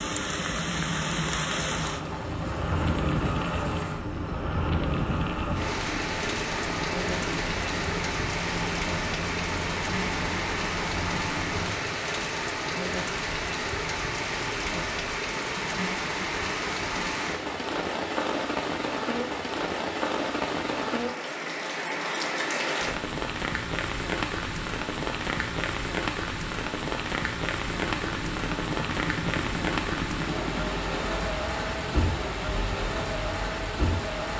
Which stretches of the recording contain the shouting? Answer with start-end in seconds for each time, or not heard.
not heard.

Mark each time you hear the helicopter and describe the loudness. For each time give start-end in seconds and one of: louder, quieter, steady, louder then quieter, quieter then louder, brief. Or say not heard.
0.0-11.8 steady
27.9-34.3 quieter.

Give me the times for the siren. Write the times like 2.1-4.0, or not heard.
not heard.